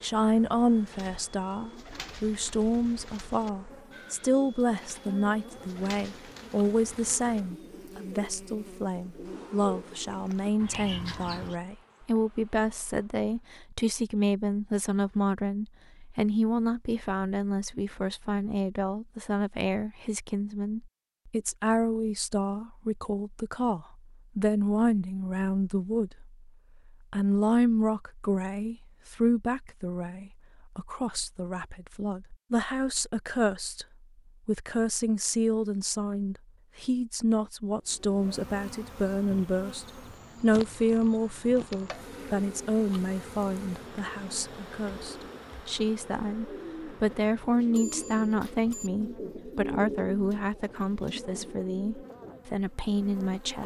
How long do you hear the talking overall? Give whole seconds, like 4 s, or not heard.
53 s.